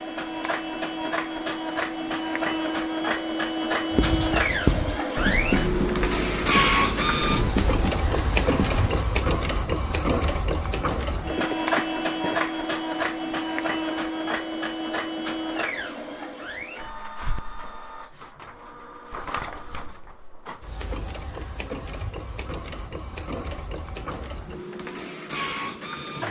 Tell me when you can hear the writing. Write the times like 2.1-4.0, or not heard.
3.9-9.1.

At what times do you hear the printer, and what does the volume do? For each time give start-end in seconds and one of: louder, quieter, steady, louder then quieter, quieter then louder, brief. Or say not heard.
0.0-26.2 quieter.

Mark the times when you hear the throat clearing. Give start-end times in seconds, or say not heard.
11.3-12.4.